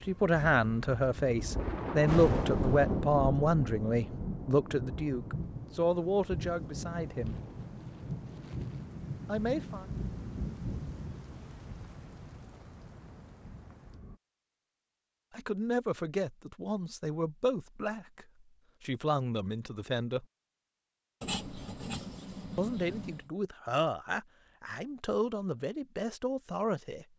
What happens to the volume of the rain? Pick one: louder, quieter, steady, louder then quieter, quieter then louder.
quieter.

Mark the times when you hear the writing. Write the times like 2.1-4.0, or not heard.
21.2-23.2.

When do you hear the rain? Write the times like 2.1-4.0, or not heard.
0.0-14.2.